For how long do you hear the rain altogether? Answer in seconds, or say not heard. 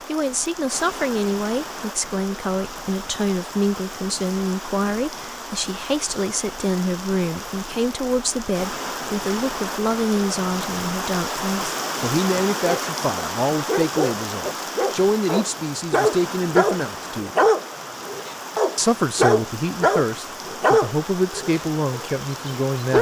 23 s.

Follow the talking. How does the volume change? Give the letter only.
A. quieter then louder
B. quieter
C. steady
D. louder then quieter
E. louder
C.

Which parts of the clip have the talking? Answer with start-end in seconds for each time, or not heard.
0.1-17.4, 18.8-22.9.